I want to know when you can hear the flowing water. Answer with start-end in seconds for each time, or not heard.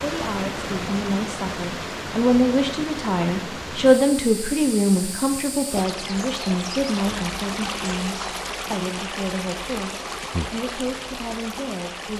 0.0-12.1.